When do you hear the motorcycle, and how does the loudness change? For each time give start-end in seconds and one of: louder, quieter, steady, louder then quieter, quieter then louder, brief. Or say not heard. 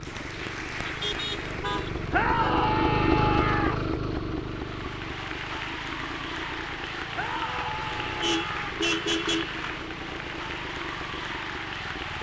0.0-12.1 louder then quieter.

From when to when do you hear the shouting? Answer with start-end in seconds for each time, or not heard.
2.1-3.8, 7.2-8.8.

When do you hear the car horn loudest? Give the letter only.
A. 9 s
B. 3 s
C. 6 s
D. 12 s
A.